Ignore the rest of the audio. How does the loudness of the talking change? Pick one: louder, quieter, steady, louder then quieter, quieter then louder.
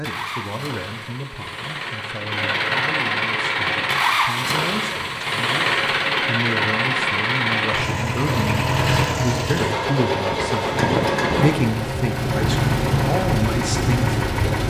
louder.